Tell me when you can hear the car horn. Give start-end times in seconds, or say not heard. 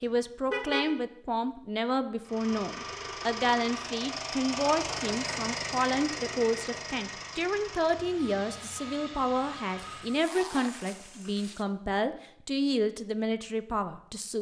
0.5-0.9.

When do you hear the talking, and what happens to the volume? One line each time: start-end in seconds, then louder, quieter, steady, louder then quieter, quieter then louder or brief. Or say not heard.
0.0-14.3 steady.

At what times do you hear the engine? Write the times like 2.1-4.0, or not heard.
2.2-10.2.